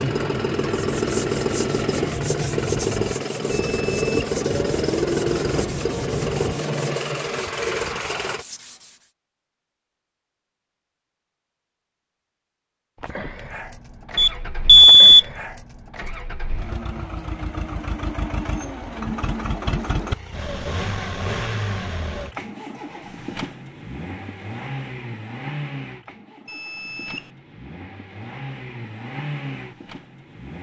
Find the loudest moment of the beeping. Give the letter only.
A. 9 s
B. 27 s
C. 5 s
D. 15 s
D.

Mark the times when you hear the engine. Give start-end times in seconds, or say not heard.
0.0-8.4, 12.9-30.5.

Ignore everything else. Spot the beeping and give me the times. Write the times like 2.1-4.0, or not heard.
3.5-4.1, 14.2-15.2, 26.4-27.3.